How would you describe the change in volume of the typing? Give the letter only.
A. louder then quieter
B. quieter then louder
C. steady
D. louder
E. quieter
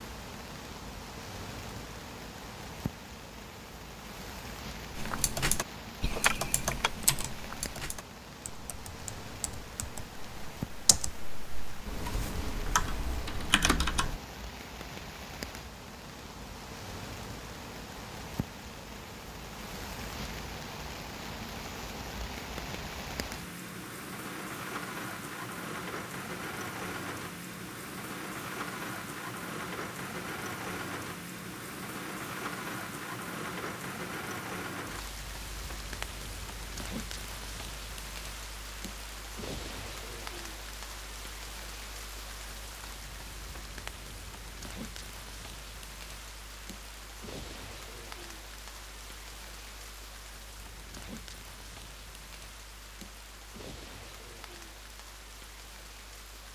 B.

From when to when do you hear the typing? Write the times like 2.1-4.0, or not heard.
5.0-14.2.